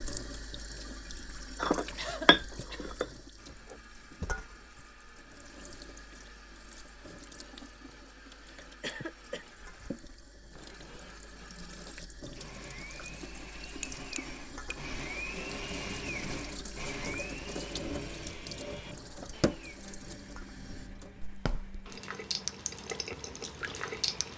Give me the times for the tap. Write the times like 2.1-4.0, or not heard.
0.0-24.3.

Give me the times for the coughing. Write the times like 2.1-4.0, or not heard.
1.9-3.0, 8.6-9.4, 18.6-19.4.